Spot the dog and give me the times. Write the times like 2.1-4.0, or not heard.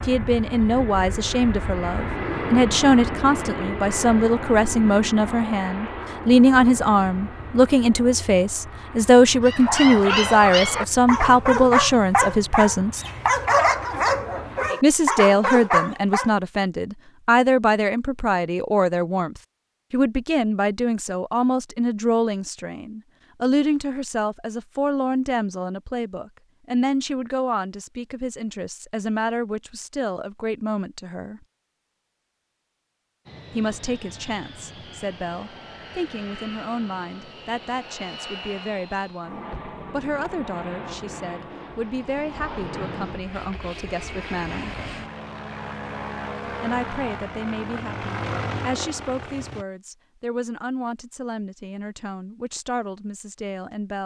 9.4-16.3.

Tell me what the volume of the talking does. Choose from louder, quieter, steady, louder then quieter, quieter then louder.
quieter.